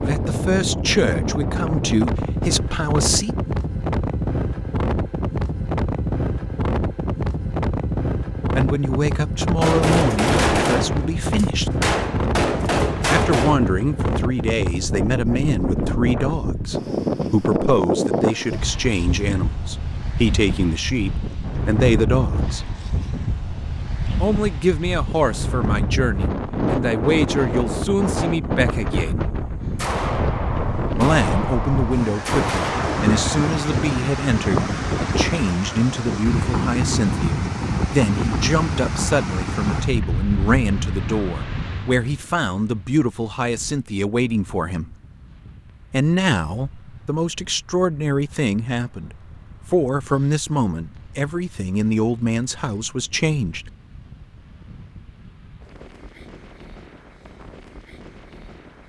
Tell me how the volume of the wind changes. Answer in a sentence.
The volume of the wind goes down.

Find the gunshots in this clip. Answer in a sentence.
You can hear the gunshots from 9.6 to 13.6 s and from 29.8 to 33.5 s.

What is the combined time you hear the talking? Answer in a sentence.
You can hear the talking for 43 seconds altogether.